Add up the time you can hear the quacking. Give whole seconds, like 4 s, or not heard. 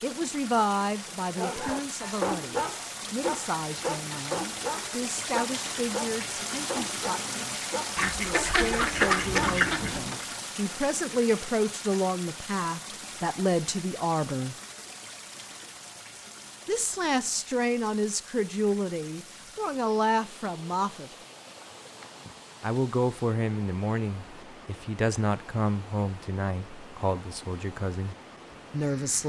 2 s.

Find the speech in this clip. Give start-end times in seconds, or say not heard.
0.0-14.6, 16.6-21.1, 22.6-29.2.